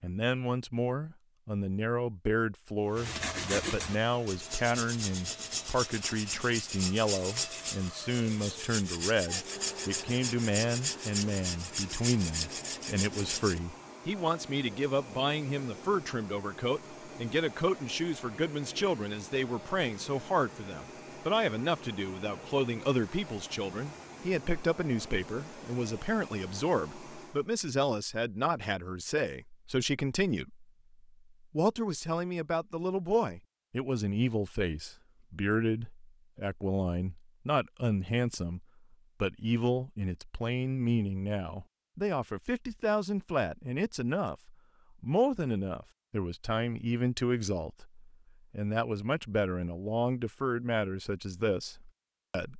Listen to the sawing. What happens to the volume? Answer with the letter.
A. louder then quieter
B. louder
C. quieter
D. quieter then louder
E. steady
E.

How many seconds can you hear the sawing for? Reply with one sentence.
You can hear the sawing for 11 seconds altogether.